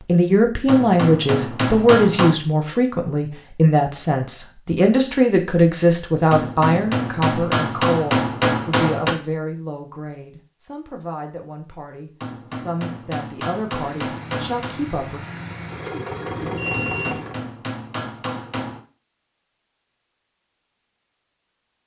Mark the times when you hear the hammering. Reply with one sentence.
The hammering can be heard from 0.7 to 2.4 s, from 6.3 to 9.1 s, from 12.2 to 14.8 s and from 16.7 to 18.8 s.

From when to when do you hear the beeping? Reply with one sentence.
The beeping can be heard from 16.1 to 17.1 s.